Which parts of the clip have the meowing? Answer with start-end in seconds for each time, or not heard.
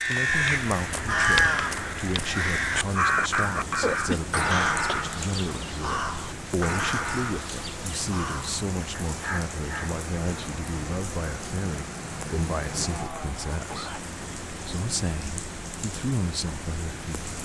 not heard.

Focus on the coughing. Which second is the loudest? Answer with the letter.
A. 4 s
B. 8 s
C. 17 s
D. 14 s
A.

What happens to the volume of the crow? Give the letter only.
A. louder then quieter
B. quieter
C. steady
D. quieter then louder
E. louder
B.